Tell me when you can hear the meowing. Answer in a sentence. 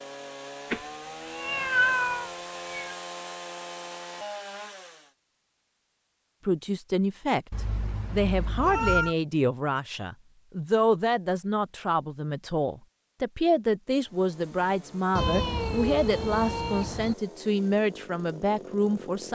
The meowing can be heard from 0.7 to 3.0 s, from 7.5 to 9.2 s and from 15.2 to 17.1 s.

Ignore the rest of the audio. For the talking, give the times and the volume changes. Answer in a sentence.
You can hear the talking from 6.5 to 19.3 s, at a steady volume.